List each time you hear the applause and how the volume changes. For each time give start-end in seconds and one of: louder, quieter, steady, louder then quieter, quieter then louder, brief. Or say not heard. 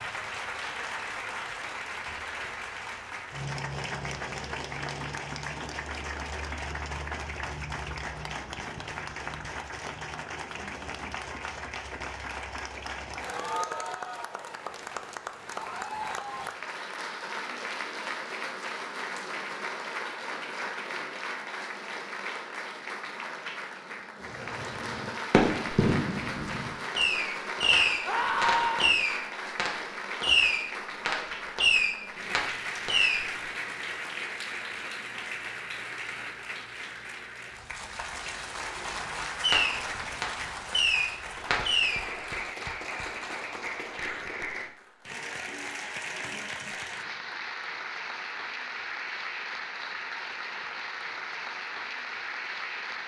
0.0-53.0 steady.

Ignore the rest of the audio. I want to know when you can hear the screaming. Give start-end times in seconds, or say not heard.
15.6-16.4, 28.1-28.9.